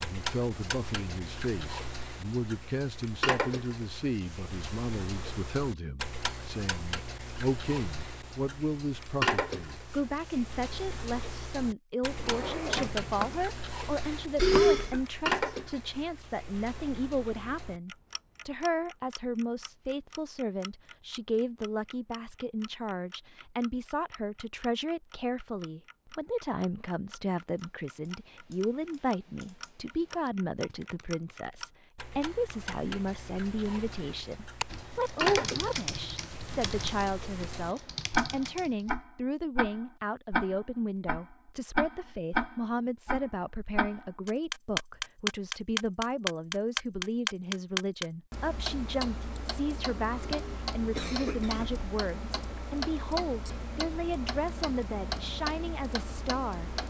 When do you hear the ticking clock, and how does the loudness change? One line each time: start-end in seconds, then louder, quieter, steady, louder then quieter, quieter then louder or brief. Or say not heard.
0.0-56.8 quieter then louder.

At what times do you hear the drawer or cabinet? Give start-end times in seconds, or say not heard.
12.1-13.4.